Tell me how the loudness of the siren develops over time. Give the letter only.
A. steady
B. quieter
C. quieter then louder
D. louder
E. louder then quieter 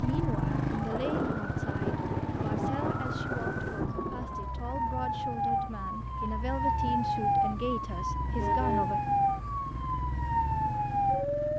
D.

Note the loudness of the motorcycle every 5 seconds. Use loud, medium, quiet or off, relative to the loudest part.
loud, medium, medium.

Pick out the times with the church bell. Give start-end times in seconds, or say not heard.
not heard.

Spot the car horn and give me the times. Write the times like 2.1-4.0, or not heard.
8.3-8.9.